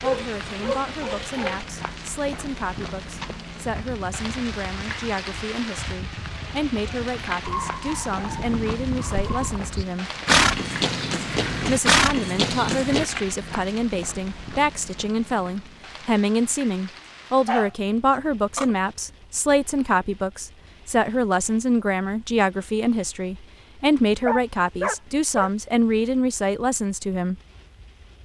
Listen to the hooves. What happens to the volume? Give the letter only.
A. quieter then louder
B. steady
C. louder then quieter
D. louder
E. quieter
D.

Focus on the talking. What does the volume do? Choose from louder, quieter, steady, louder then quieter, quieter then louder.
louder.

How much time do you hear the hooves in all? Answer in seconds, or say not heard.
10 s.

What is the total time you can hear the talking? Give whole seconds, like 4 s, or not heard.
26 s.